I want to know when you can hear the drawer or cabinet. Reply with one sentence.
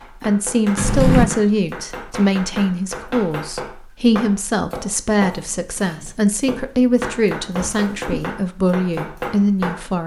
The drawer or cabinet can be heard from 0.8 to 1.2 s and from 7.6 to 8.2 s.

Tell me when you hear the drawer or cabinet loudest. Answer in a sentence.
The volume of the drawer or cabinet peaks at 1 second.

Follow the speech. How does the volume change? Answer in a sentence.
The volume of the speech stays about the same.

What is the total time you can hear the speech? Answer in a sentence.
You can hear the speech for 10 seconds altogether.